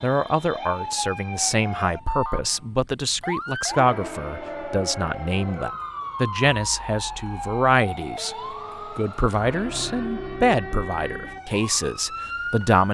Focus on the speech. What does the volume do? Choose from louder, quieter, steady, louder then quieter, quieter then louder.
steady.